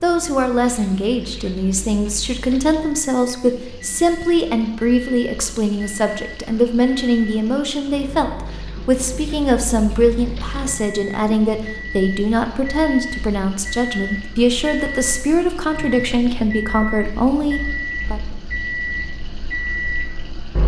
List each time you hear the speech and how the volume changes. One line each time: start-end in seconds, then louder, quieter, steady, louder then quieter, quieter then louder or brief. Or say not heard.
0.0-18.2 steady.